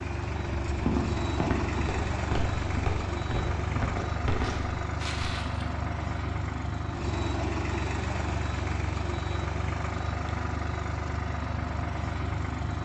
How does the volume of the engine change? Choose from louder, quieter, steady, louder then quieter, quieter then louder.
steady.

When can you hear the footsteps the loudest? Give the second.
1 s.